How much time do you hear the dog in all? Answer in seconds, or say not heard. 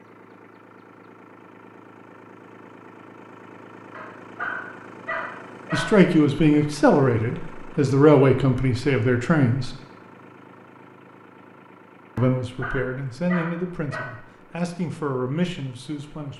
4 s.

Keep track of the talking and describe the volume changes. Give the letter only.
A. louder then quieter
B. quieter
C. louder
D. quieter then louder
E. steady
B.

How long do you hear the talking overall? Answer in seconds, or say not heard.
8 s.